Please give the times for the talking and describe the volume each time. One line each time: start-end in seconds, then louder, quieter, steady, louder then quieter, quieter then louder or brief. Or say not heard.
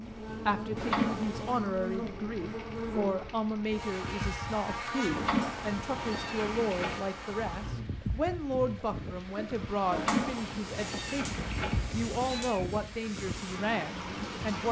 0.0-14.6 steady.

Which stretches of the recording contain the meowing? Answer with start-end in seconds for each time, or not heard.
0.8-1.6, 5.1-7.0, 9.9-12.6.